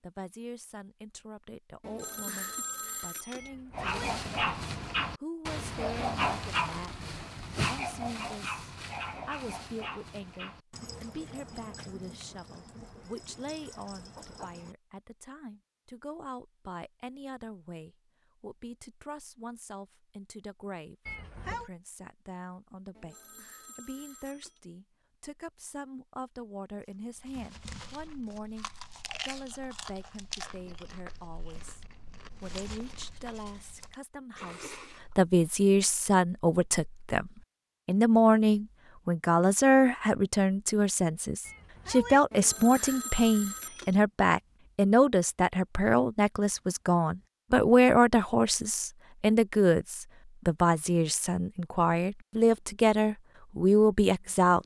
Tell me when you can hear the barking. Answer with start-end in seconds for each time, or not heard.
3.7-14.8.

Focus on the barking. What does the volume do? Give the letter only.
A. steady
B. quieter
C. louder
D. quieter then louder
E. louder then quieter
B.